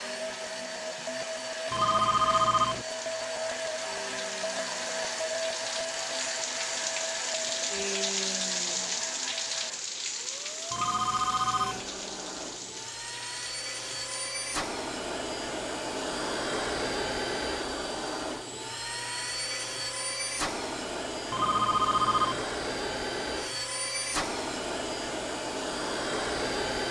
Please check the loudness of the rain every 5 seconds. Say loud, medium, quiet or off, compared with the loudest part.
medium, loud, medium, off, off, off.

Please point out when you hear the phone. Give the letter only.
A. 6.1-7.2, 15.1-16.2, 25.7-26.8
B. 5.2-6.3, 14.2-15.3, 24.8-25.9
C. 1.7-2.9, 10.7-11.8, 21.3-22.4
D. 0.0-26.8
C.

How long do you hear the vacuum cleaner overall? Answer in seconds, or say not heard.
27 s.